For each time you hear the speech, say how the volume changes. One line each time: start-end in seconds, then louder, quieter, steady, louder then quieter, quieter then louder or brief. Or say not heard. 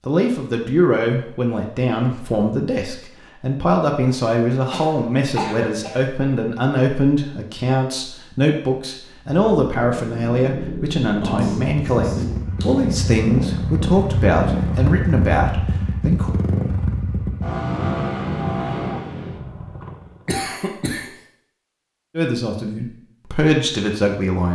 0.1-16.4 steady
22.1-24.5 brief.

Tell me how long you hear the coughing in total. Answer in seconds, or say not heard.
4 s.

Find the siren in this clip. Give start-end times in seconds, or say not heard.
not heard.